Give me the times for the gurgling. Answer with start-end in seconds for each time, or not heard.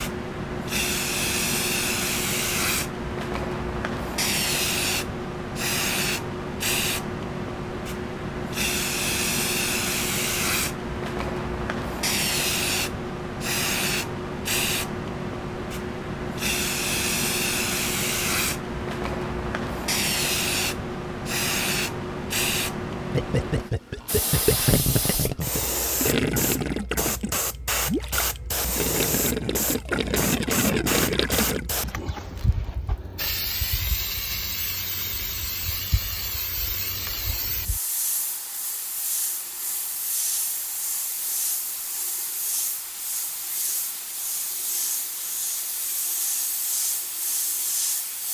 23.1-31.7.